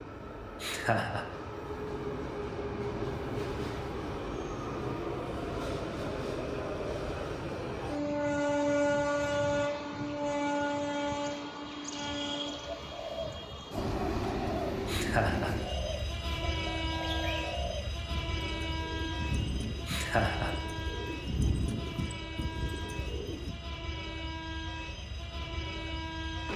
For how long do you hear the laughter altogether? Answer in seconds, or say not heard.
2 s.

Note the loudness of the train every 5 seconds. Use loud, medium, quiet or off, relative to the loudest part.
medium, loud, loud, medium, medium, medium.